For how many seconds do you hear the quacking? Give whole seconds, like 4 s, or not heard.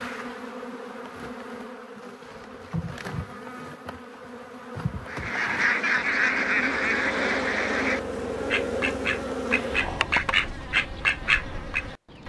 7 s.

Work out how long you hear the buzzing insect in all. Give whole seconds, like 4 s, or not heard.
12 s.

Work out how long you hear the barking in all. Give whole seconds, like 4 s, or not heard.
not heard.